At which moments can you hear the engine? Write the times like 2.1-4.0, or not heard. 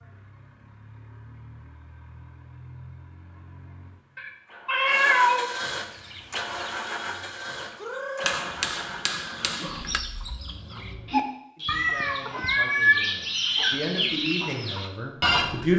0.0-11.2.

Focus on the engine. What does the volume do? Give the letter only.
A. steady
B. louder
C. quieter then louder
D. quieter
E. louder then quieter
E.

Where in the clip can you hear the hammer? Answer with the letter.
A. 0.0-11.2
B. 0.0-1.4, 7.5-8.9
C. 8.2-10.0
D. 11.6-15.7
C.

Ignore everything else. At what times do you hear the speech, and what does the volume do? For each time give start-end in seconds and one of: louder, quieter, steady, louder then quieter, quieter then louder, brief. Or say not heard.
11.6-15.7 louder then quieter.